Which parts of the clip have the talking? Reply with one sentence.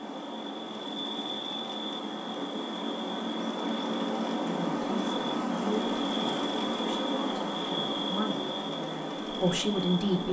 The talking can be heard from 4.4 to 10.2 s.